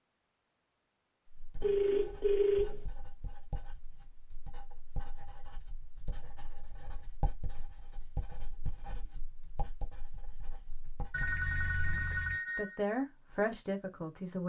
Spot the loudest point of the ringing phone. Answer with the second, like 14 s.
2 s.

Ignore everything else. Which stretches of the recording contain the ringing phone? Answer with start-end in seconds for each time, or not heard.
1.6-2.8, 11.1-12.8.